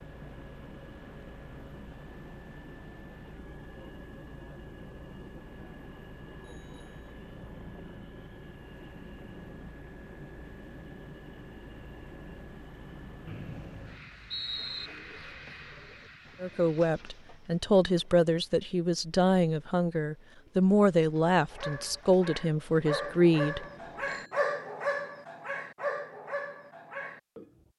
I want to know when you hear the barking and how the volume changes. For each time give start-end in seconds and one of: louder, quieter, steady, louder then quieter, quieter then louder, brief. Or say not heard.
21.5-27.6 louder then quieter.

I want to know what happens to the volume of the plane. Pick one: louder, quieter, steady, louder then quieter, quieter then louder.
steady.